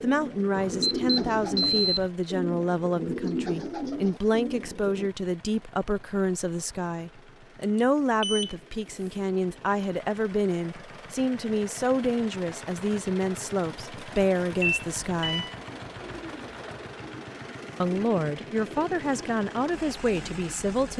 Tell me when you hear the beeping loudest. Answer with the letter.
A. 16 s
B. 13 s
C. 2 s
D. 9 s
C.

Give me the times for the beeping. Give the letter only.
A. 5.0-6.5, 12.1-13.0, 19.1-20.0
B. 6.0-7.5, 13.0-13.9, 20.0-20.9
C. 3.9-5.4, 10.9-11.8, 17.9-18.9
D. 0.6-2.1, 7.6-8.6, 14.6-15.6
D.